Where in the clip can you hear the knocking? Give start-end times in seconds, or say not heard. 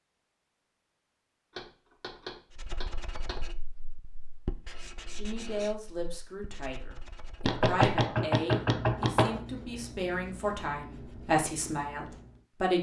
1.5-3.5, 7.5-9.4.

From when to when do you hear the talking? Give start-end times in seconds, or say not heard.
5.2-12.7.